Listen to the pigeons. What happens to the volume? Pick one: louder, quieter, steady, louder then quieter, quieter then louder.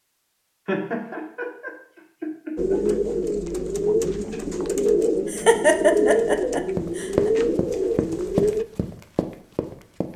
steady.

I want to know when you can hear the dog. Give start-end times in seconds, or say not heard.
not heard.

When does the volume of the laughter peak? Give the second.
6 s.